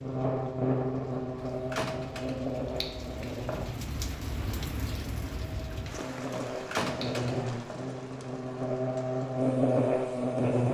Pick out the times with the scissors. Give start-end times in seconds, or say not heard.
2.8-3.7, 7.0-8.0.